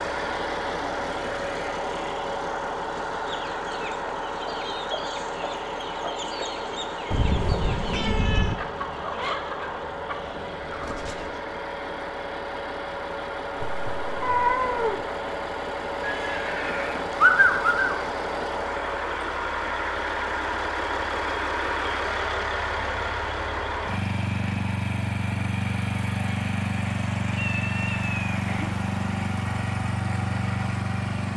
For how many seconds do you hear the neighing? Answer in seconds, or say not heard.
2 s.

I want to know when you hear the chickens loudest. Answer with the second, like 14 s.
9 s.